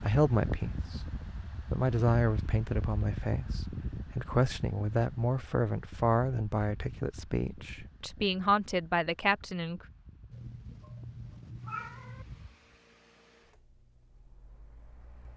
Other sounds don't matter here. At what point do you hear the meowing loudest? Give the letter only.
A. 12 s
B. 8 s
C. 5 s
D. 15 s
A.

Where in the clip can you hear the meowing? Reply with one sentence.
You can hear the meowing from 10.3 to 12.2 s.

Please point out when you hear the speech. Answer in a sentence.
The speech can be heard from 0.0 to 9.8 s.